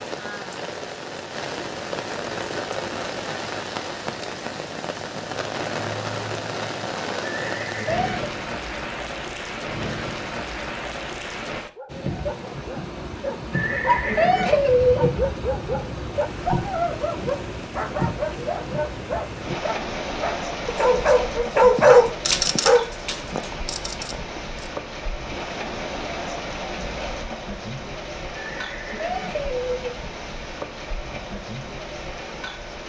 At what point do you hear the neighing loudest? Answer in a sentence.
The loudest moment of the neighing is at 15 seconds.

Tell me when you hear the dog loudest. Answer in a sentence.
The volume of the dog peaks at 22 seconds.